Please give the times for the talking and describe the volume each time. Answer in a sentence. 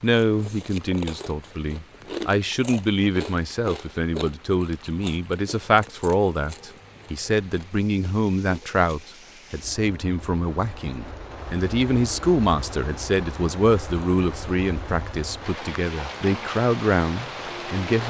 The talking can be heard from 0.0 to 18.0 s, at a steady volume.